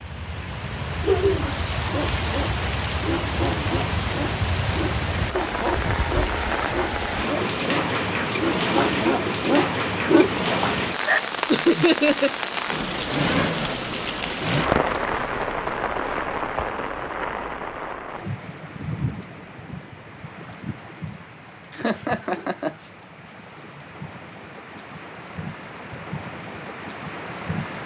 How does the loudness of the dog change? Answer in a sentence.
The volume of the dog goes up.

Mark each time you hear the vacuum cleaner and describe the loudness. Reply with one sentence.
The vacuum cleaner can't be heard in this clip.